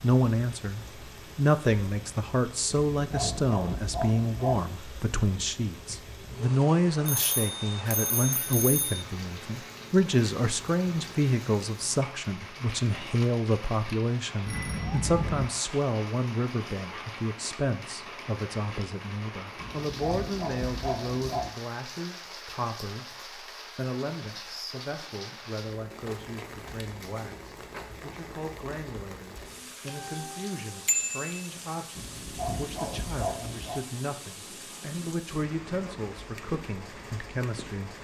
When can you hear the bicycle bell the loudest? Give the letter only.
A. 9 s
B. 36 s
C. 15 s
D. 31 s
D.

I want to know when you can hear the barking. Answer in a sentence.
The barking can be heard from 2.9 to 4.7 s, from 19.6 to 21.5 s and from 31.9 to 33.8 s.